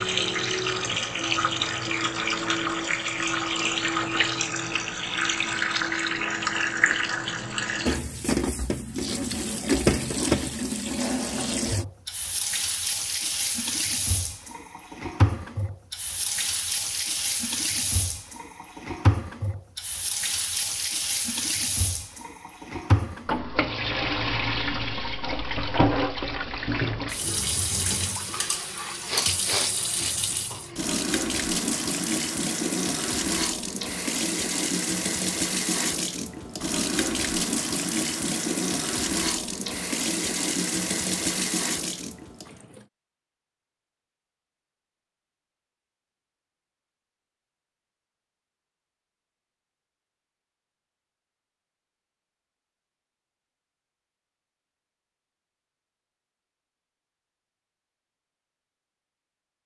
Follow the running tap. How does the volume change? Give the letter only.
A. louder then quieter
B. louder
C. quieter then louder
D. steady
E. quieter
D.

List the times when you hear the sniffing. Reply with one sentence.
The sniffing can be heard from 29.1 to 30.1 s.